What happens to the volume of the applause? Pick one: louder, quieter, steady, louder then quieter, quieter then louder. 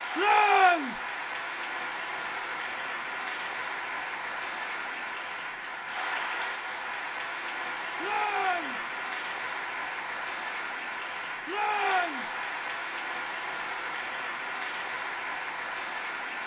steady.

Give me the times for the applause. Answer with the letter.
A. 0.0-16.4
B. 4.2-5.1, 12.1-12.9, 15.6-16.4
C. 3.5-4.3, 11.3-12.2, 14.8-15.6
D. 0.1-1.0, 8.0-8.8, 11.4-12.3
A.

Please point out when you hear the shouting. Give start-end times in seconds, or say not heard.
0.1-1.0, 8.0-8.8, 11.4-12.3.